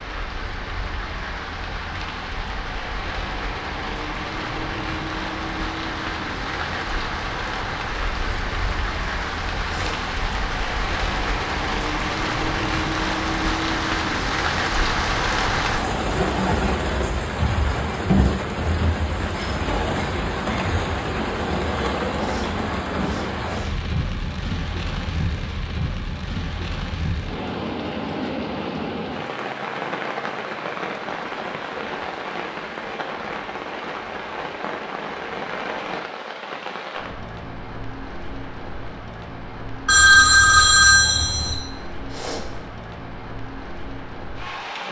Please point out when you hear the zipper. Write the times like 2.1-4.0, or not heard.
not heard.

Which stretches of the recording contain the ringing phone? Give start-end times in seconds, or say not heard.
39.9-41.6.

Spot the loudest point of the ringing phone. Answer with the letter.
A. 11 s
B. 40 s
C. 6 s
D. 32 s
B.